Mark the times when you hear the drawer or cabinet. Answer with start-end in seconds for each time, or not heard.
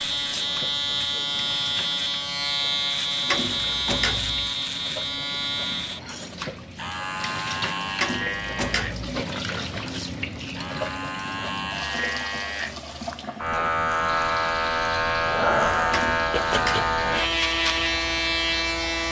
3.2-4.5, 8.0-9.1, 15.9-16.9.